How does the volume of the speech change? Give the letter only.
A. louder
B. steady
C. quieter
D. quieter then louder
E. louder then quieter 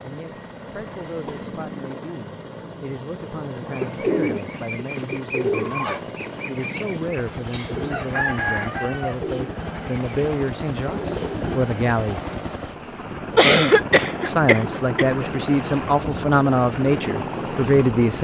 A.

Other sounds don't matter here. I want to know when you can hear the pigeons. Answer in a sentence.
You can hear the pigeons from 3.7 to 11.7 s.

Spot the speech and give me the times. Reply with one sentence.
The speech can be heard from 0.0 to 12.3 s and from 14.2 to 18.2 s.